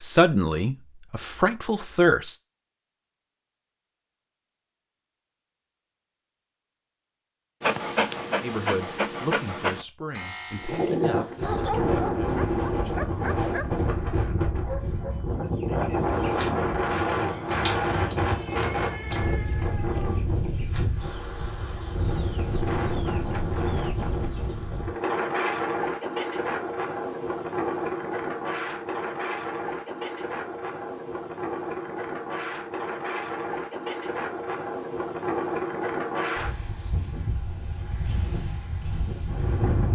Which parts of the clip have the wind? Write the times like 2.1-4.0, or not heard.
10.6-39.8.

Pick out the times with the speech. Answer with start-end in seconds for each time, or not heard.
0.0-2.4, 8.4-13.8.